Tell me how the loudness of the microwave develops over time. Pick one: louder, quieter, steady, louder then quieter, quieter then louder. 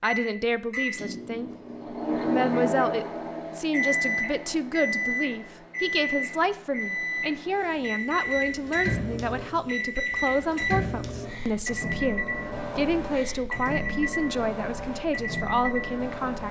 steady.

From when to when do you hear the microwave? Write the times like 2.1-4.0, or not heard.
0.0-16.4.